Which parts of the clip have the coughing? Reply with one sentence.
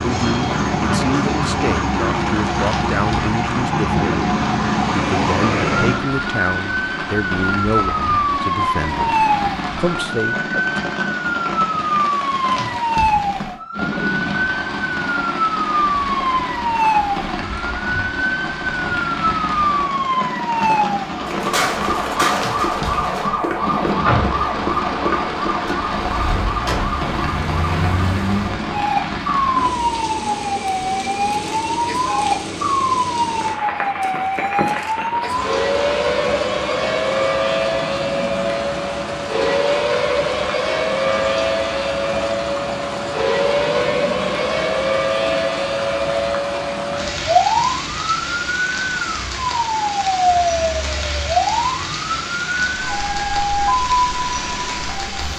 You can't hear the coughing here.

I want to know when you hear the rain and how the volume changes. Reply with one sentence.
You can hear the rain from 0.0 to 55.3 s, at a steady volume.